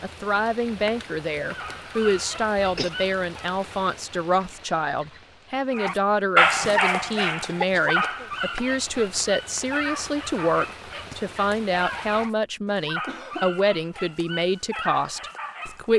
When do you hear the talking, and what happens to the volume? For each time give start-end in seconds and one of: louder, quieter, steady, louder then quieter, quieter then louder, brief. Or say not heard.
0.0-15.9 steady.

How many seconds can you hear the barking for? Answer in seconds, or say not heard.
12 s.